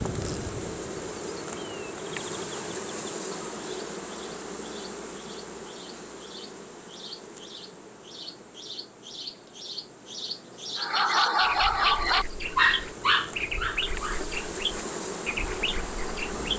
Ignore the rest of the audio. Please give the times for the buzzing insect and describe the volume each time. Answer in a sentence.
The buzzing insect can be heard from 0.0 to 16.5 s, getting quieter then louder.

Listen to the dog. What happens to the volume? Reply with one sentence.
The loudness of the dog goes down.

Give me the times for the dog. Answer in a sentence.
You can hear the dog from 10.8 to 16.5 s.